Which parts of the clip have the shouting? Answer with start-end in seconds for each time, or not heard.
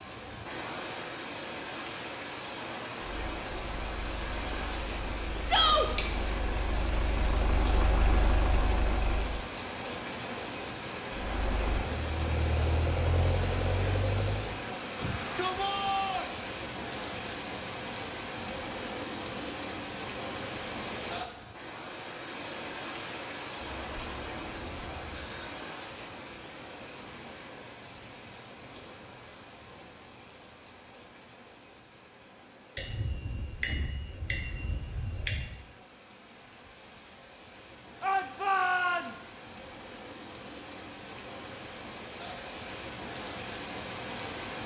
5.5-5.9, 14.9-16.3, 38.0-39.4.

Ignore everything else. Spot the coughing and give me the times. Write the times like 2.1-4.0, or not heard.
not heard.